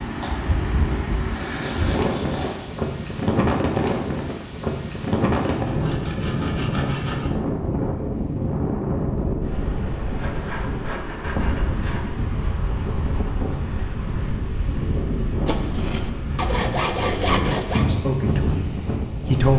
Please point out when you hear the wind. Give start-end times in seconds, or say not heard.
0.0-19.5.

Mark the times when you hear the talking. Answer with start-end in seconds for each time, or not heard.
17.1-19.5.